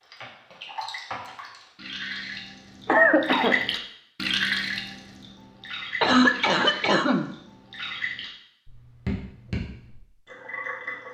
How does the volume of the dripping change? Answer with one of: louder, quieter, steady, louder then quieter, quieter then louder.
louder then quieter.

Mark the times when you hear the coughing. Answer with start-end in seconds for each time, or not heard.
2.9-3.6, 6.0-7.3.